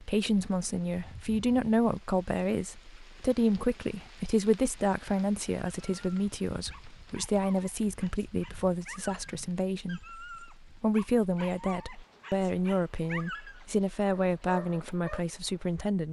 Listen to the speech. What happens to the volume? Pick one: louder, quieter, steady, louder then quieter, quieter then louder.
steady.